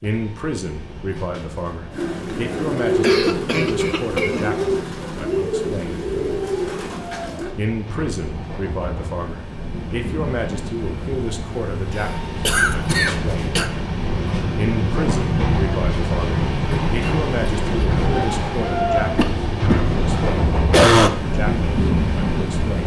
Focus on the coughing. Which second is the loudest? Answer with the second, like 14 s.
21 s.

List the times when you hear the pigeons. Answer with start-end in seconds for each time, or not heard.
1.9-7.5.